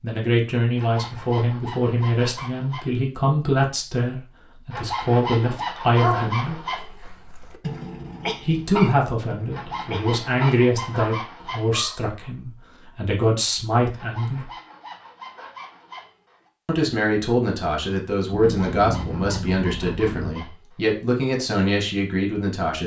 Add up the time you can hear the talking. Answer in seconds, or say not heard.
19 s.